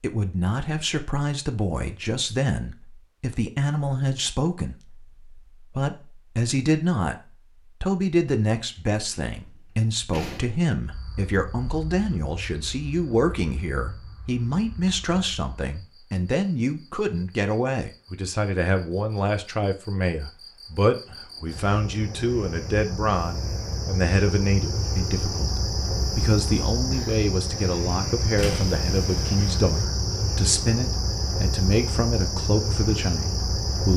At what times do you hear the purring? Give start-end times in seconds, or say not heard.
not heard.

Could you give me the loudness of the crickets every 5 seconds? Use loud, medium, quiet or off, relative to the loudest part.
off, off, quiet, quiet, medium, loud, loud.